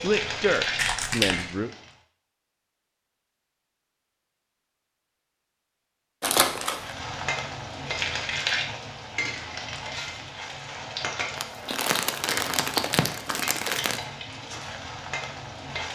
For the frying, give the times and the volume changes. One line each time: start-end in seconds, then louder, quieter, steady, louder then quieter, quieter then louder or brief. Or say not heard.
0.0-1.9 brief
6.7-15.9 quieter.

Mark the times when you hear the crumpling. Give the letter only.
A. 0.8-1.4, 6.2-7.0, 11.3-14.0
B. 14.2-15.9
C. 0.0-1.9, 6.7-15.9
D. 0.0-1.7
A.